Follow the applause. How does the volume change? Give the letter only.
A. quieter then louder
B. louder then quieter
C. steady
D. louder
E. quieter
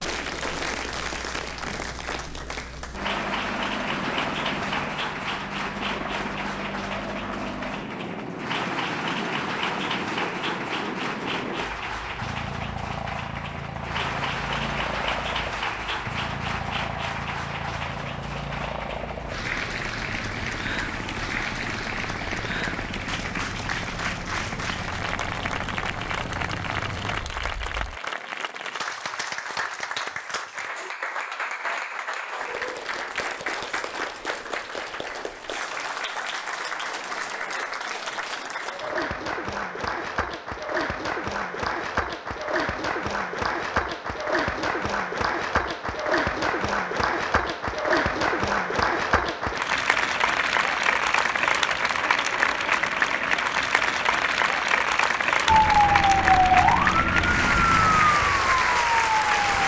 D.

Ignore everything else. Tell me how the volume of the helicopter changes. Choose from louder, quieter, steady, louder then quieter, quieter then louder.
steady.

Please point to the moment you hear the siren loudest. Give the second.
56 s.